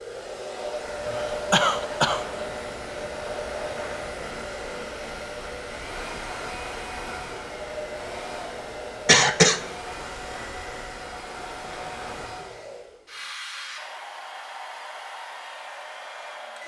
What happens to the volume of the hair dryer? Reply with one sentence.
The volume of the hair dryer goes down.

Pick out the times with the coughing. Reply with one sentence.
The coughing can be heard from 1.1 to 2.5 s and from 9.1 to 9.6 s.